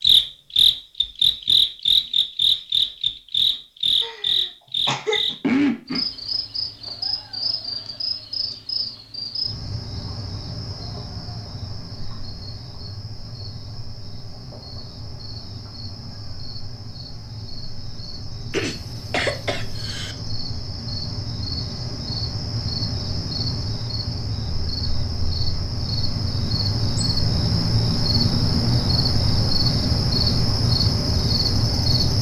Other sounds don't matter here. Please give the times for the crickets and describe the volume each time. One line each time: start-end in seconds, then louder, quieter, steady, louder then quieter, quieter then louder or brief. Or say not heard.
0.0-32.1 quieter then louder.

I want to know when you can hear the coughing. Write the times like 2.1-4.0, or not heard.
4.0-5.3, 18.5-20.1.